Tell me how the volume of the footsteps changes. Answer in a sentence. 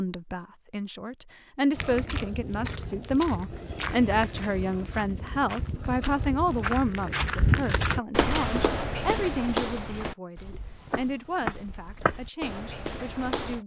The loudness of the footsteps goes up, then down.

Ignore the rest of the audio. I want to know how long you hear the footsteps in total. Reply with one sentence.
The footsteps can be heard for 12 seconds in total.